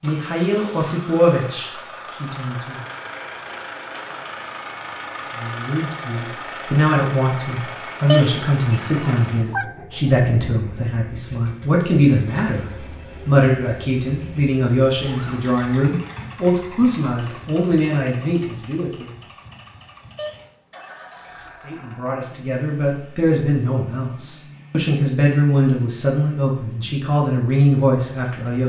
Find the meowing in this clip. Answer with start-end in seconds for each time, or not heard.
8.1-9.7, 20.1-21.2.